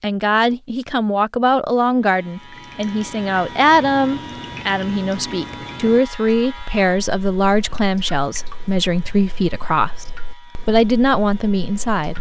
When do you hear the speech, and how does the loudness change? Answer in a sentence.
The speech can be heard from 0.0 to 12.1 s, at a steady volume.